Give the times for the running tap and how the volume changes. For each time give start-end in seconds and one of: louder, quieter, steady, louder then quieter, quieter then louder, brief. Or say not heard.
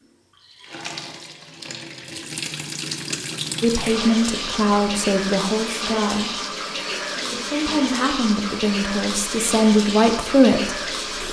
0.0-11.2 louder.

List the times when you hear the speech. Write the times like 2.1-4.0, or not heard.
3.6-10.9.